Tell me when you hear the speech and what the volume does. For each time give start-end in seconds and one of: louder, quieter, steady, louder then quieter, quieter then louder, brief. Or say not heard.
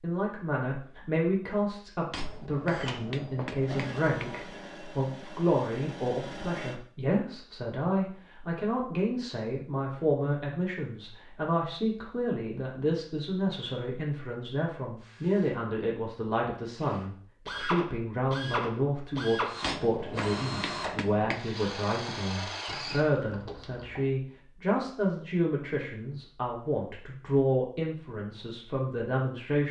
0.0-29.6 steady.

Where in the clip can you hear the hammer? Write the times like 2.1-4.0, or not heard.
2.1-4.4, 19.6-21.4.